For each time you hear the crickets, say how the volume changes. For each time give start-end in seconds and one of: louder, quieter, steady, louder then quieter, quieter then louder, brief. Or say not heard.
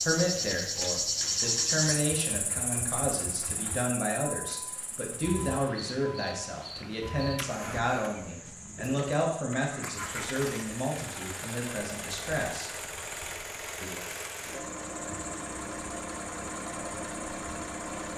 0.0-18.1 quieter.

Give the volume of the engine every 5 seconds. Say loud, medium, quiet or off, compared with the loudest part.
medium, medium, loud, loud.